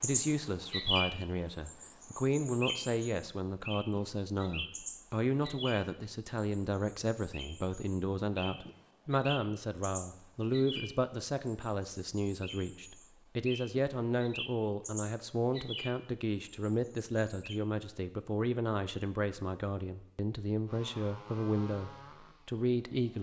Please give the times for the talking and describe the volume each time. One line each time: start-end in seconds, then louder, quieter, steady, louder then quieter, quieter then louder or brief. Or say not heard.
0.0-23.1 steady.